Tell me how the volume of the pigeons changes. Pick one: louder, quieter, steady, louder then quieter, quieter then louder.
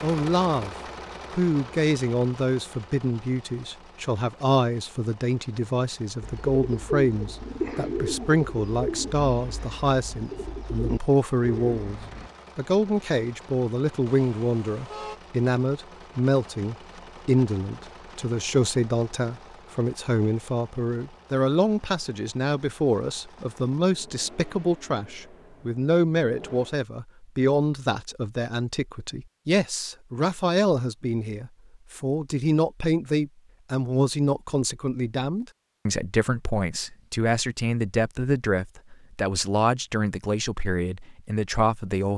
quieter then louder.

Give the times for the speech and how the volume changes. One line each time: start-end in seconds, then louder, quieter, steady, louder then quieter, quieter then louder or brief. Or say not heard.
0.0-42.1 steady.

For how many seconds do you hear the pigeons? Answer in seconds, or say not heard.
6 s.